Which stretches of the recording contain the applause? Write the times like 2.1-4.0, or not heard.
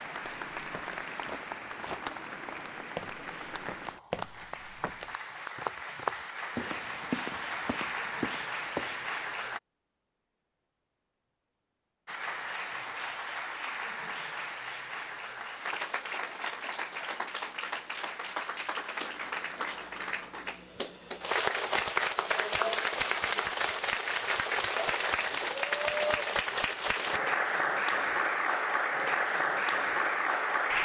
0.0-9.6, 12.1-30.7.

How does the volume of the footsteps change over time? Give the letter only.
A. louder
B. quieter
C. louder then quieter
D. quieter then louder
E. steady
C.